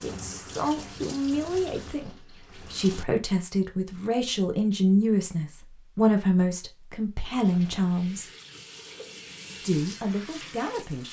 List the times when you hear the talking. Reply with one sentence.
The talking can be heard from 0.0 to 8.3 s and from 9.6 to 11.0 s.